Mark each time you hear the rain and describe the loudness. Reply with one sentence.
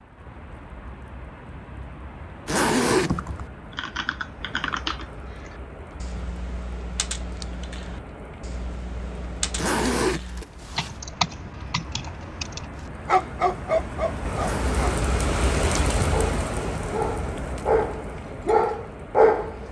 You can hear the rain from 0.0 to 19.6 s, getting louder.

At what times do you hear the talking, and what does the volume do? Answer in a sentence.
The talking can't be heard in this clip.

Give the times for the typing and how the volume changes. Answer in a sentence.
You can hear the typing from 3.0 to 12.7 s, getting quieter then louder.